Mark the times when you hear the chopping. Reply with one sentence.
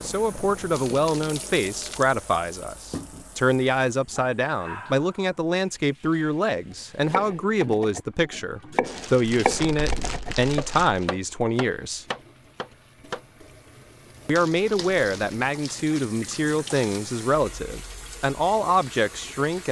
You can hear the chopping from 6.8 to 13.2 s.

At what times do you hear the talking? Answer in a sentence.
The talking can be heard from 0.0 to 12.1 s and from 14.2 to 19.6 s.